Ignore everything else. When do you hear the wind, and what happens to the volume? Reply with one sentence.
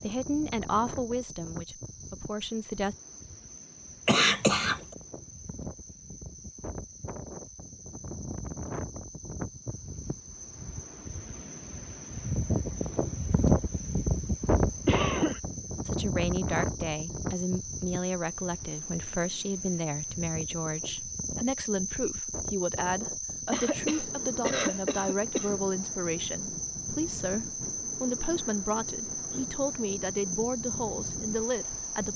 The wind can be heard from 0.0 to 32.1 s, getting louder then quieter.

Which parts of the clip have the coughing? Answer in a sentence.
You can hear the coughing from 4.0 to 4.8 s, from 14.4 to 15.4 s and from 23.5 to 25.6 s.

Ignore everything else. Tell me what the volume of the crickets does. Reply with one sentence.
The loudness of the crickets goes up.